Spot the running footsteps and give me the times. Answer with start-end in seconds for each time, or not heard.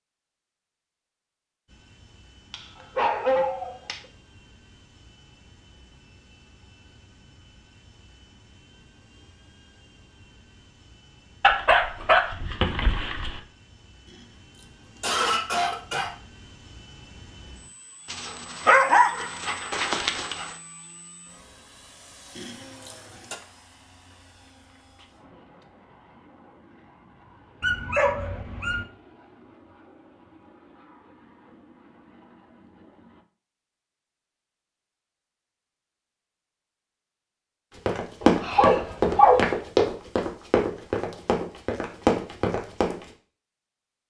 37.9-43.0.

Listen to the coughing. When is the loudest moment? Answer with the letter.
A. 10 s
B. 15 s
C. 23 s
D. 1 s
B.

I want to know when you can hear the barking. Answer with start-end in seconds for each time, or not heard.
2.5-4.0, 11.4-13.4, 18.1-20.6, 27.6-28.9, 38.2-39.5.